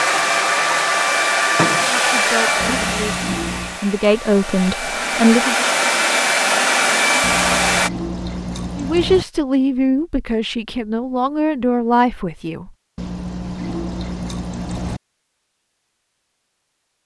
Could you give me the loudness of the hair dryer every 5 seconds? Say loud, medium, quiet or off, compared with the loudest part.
loud, loud, off, off.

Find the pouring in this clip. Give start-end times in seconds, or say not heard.
2.6-3.8, 7.2-9.2, 12.9-15.0.